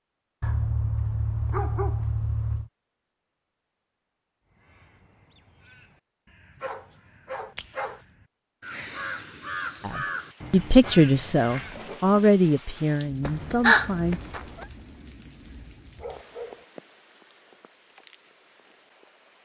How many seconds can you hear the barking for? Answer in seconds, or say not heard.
6 s.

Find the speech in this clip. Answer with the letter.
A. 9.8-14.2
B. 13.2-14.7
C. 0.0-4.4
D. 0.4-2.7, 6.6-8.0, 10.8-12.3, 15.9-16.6
A.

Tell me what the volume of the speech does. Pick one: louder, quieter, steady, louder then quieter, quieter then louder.
quieter.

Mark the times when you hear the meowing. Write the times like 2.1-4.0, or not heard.
13.2-14.7.